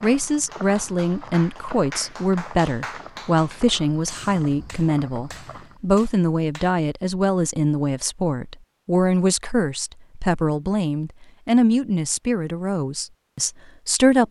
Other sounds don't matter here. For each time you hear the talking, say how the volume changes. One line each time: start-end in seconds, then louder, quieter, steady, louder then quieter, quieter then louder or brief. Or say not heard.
0.0-14.2 steady.